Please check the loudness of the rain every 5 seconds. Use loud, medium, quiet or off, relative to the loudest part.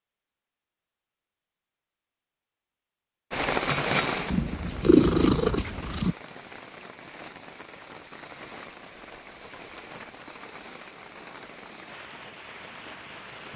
loud, quiet, quiet.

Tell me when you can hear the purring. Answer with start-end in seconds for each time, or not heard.
4.1-6.2.